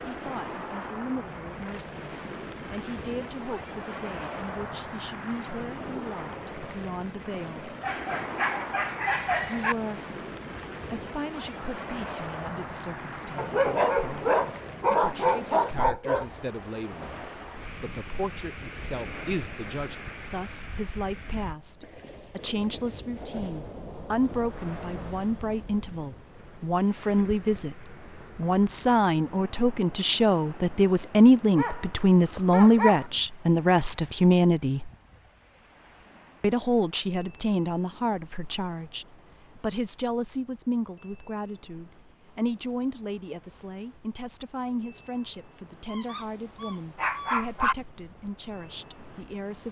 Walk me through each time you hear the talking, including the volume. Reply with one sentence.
The talking can be heard from 0.0 to 7.8 s, at a steady volume; briefly from 9.4 to 10.2 s; from 10.9 to 34.9 s, getting louder; and from 36.4 to 49.6 s, getting quieter.